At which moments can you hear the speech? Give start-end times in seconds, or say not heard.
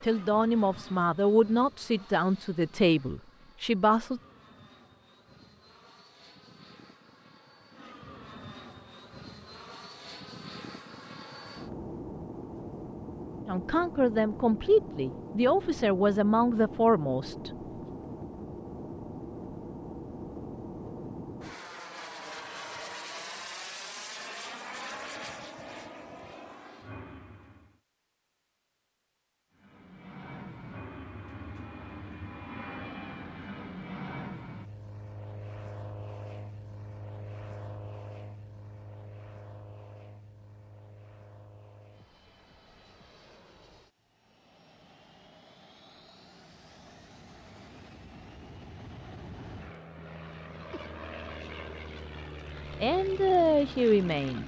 0.0-4.2, 13.4-17.5, 52.8-54.4.